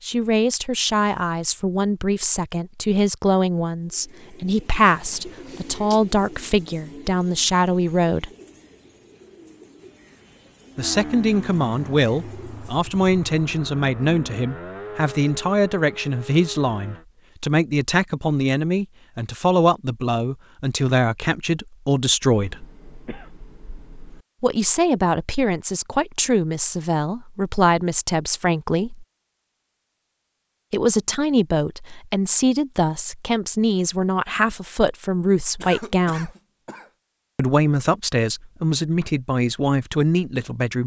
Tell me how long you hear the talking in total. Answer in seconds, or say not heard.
34 s.